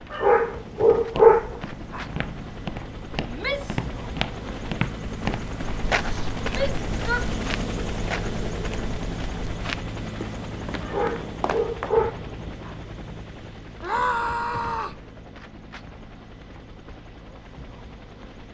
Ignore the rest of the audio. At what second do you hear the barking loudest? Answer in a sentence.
The loudest moment of the barking is at 1 second.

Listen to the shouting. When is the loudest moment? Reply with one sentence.
The loudest moment of the shouting is at 14 seconds.